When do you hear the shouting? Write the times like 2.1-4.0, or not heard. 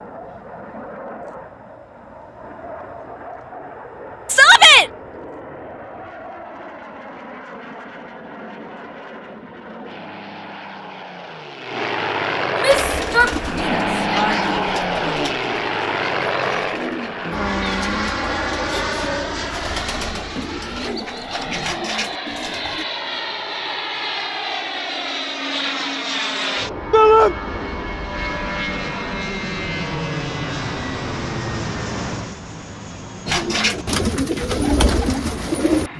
4.2-4.9, 12.6-14.5, 26.9-27.4.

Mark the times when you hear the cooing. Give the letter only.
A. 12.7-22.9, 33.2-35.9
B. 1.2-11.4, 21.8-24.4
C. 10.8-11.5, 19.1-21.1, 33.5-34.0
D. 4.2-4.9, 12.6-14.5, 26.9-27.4
A.